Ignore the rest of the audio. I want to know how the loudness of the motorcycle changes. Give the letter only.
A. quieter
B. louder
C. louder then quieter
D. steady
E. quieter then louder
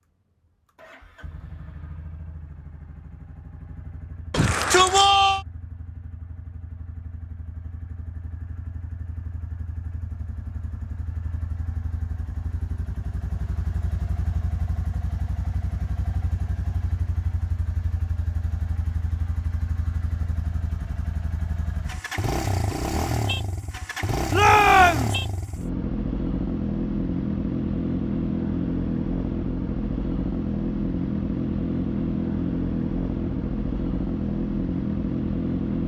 B.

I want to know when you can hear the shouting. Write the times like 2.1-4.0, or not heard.
4.3-5.5, 24.3-25.1.